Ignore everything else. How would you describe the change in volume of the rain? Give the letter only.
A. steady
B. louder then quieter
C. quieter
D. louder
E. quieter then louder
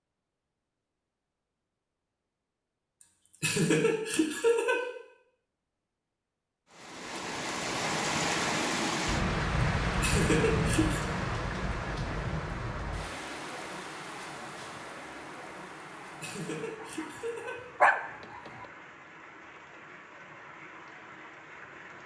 C.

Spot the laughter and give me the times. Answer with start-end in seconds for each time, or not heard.
3.4-4.8, 10.0-11.1, 16.2-17.6.